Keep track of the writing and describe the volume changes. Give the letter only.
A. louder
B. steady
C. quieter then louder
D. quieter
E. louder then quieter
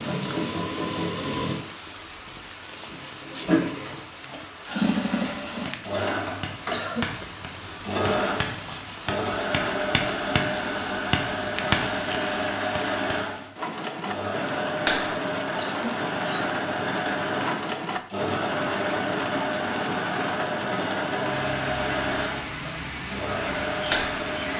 A.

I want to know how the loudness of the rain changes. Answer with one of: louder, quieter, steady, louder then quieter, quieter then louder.
louder.